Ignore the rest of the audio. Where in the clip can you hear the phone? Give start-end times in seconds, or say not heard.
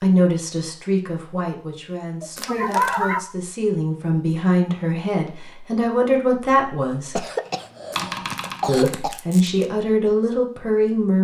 not heard.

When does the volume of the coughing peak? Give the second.
3 s.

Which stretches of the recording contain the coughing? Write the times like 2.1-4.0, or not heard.
2.2-3.3, 7.2-9.2.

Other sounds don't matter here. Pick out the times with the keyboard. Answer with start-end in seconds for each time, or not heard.
6.8-8.8.